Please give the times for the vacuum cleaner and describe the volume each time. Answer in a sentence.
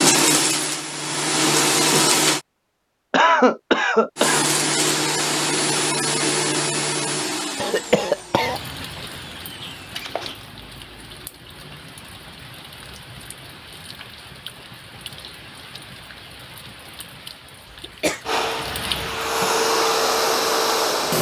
The vacuum cleaner can be heard briefly from 0.0 to 2.4 s; from 4.2 to 10.4 s, getting quieter; and briefly from 18.2 to 21.1 s.